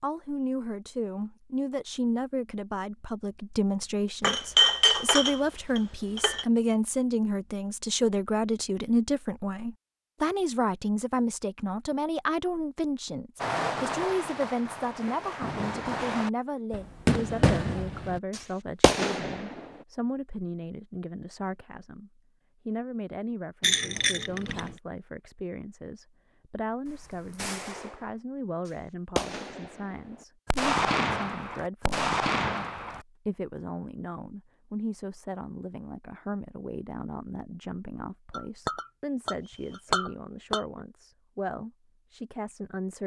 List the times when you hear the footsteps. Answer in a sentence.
You can't hear the footsteps here.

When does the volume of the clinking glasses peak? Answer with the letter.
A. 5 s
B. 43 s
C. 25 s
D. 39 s
A.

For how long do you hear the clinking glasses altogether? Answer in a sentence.
The clinking glasses can be heard for 6 seconds in total.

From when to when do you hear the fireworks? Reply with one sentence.
You can hear the fireworks from 13.4 to 19.7 s and from 26.9 to 33.0 s.